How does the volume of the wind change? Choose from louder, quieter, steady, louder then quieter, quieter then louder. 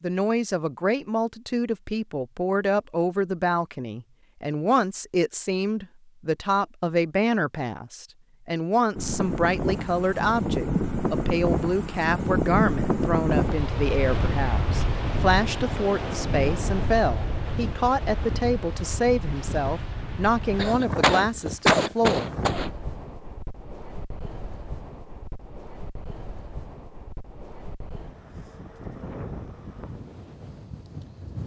quieter.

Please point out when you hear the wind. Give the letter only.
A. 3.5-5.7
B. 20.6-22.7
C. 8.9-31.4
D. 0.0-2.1
C.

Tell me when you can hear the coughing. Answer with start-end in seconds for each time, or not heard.
20.6-22.7.